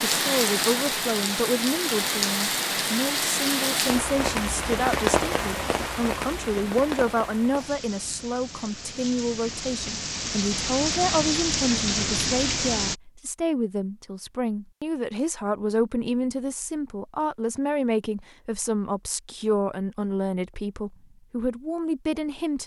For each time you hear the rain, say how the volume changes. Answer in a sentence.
You can hear the rain from 0.0 to 12.9 s, getting quieter then louder.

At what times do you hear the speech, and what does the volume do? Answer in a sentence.
The speech can be heard from 0.1 to 22.6 s, at a steady volume.